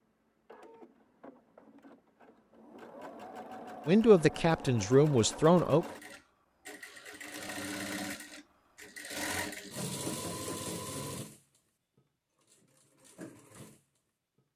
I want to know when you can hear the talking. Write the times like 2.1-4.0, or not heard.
3.9-5.8.